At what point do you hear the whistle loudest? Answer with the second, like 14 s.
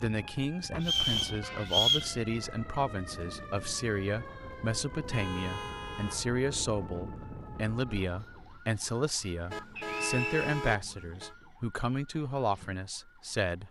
2 s.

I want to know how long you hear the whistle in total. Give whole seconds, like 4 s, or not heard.
2 s.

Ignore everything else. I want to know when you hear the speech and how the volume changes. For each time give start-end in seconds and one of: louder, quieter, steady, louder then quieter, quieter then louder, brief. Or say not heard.
0.0-13.6 steady.